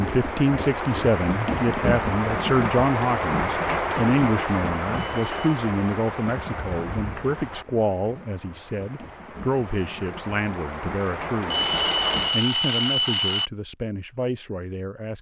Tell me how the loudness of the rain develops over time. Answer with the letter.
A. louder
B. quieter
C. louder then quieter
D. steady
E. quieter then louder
E.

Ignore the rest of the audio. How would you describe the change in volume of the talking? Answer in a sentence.
The volume of the talking goes down.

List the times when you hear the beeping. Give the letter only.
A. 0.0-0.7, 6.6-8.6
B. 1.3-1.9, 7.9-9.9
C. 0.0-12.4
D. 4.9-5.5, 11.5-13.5
D.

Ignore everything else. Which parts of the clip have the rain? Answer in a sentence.
The rain can be heard from 0.0 to 12.4 s.